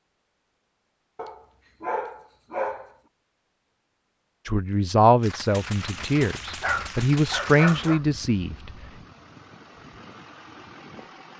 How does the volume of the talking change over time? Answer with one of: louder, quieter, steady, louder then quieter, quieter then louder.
quieter then louder.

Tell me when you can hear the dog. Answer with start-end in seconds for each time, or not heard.
1.1-2.9, 6.0-8.0.